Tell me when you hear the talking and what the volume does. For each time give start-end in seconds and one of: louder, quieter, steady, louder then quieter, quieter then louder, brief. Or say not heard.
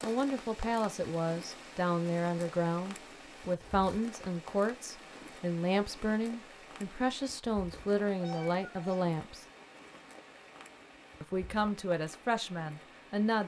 0.0-9.4 steady
11.2-13.4 brief.